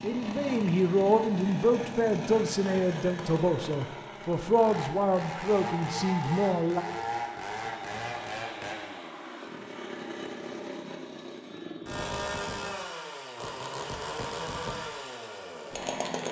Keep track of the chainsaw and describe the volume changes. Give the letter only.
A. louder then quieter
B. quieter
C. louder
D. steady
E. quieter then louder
D.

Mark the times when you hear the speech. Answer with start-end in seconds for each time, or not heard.
0.0-6.8.